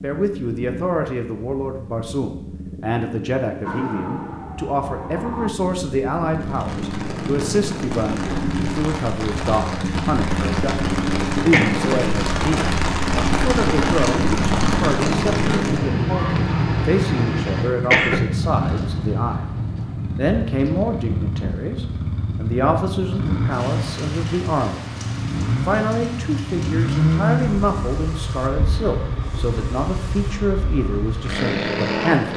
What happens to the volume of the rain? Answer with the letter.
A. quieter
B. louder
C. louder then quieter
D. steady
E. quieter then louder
C.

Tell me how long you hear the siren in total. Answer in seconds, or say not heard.
2 s.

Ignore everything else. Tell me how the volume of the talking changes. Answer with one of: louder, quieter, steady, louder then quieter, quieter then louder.
steady.